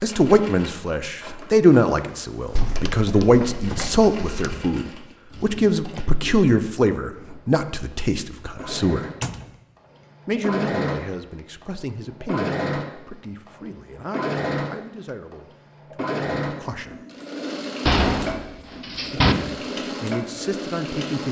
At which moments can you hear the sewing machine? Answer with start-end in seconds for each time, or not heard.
0.0-21.2.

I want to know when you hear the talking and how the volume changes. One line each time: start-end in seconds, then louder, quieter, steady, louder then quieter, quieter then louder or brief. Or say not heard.
0.0-9.1 quieter
10.2-17.1 quieter
19.1-21.2 brief.